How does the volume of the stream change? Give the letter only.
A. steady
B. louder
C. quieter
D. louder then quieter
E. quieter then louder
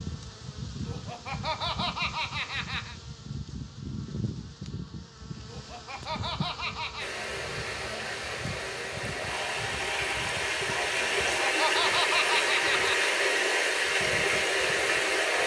B.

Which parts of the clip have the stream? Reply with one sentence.
You can hear the stream from 7.0 to 15.4 s.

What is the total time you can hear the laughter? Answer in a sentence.
You can hear the laughter for 6 seconds altogether.